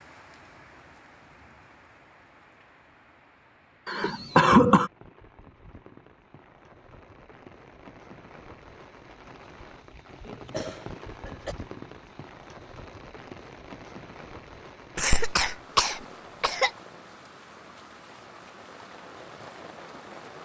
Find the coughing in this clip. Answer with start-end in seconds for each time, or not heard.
3.9-4.9, 10.2-11.6, 14.9-16.7.